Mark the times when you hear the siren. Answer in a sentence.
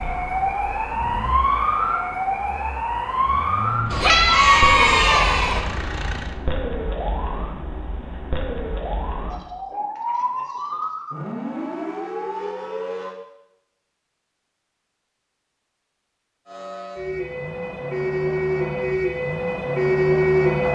You can hear the siren from 0.0 to 13.2 s and from 16.4 to 20.7 s.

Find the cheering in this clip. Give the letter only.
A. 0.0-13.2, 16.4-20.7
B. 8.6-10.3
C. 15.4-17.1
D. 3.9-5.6
D.